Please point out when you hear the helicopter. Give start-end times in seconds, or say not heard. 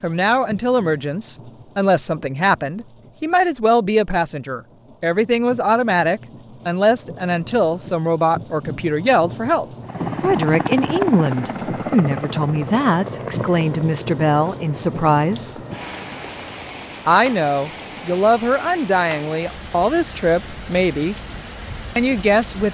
9.8-16.9.